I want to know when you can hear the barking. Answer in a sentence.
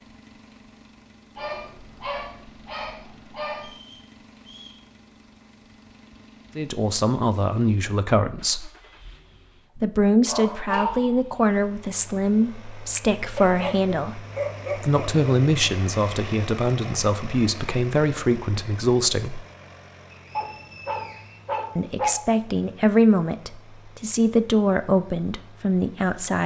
The barking can be heard from 1.4 to 3.8 s, from 9.3 to 11.2 s, from 13.3 to 15.3 s and from 20.4 to 22.1 s.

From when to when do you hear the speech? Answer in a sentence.
You can hear the speech from 6.5 to 8.7 s, from 9.8 to 19.4 s and from 21.8 to 26.4 s.